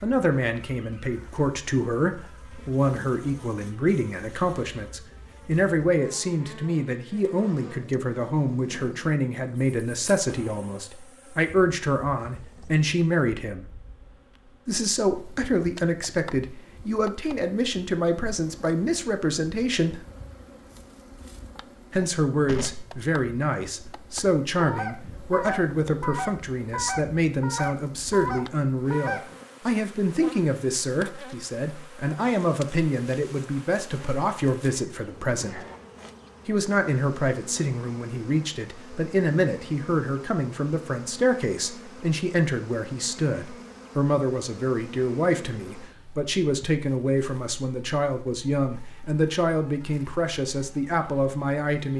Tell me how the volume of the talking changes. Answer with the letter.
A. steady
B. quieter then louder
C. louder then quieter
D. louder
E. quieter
A.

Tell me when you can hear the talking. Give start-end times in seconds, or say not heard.
0.0-13.7, 14.7-20.0, 21.9-35.6, 36.5-51.9.